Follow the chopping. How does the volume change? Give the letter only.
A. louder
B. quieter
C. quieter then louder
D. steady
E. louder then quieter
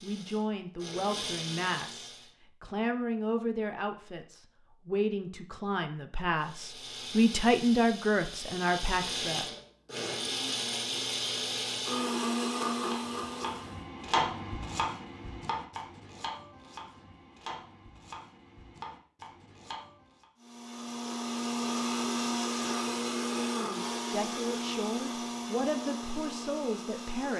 B.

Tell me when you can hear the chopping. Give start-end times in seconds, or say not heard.
12.8-20.2.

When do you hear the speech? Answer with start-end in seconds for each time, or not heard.
0.0-9.6, 24.1-27.3.